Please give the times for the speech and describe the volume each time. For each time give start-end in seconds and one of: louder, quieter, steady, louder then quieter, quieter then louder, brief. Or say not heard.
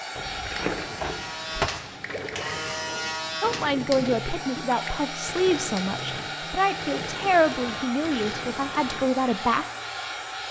3.4-9.7 steady.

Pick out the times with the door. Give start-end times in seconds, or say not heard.
0.1-1.7.